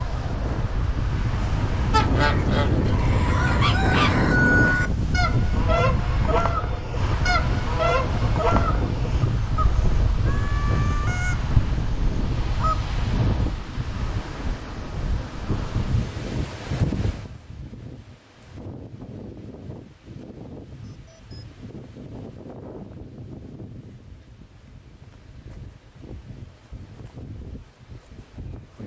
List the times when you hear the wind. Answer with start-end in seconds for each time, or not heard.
0.0-28.8.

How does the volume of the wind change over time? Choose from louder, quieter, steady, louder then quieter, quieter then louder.
quieter.